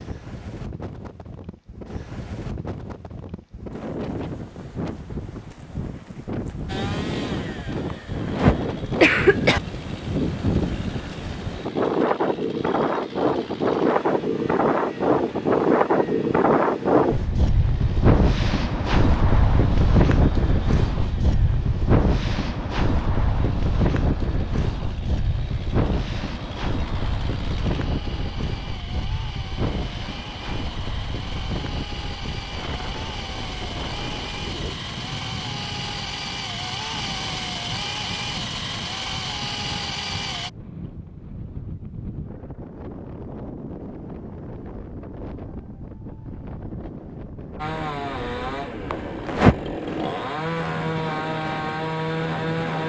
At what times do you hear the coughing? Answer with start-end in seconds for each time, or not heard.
7.9-9.6, 48.9-49.5.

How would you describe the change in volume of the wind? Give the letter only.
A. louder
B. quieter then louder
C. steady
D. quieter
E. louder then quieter
E.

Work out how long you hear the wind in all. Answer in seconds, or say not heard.
53 s.